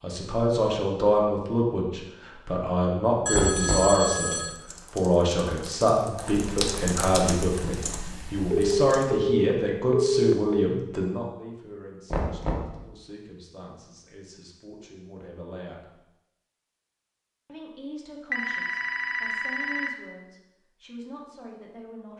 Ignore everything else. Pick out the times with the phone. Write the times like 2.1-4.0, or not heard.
3.2-4.5, 8.5-10.7, 18.3-19.9.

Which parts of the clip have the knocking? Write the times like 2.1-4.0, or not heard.
3.3-4.0, 12.1-12.8.